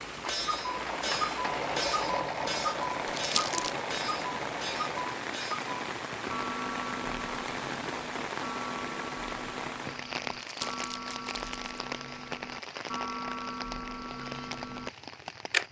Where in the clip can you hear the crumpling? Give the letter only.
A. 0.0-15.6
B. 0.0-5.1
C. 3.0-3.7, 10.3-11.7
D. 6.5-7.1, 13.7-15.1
C.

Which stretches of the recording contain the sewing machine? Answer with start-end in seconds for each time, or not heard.
0.0-5.1.